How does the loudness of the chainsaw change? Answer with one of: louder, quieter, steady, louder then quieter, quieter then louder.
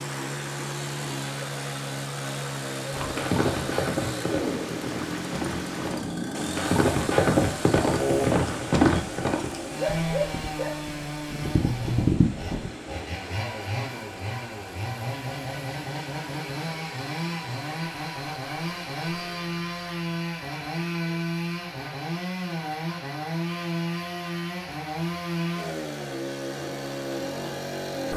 steady.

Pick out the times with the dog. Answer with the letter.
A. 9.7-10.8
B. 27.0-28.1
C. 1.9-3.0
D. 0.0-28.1
A.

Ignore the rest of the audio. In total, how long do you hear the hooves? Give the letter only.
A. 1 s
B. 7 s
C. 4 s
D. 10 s
D.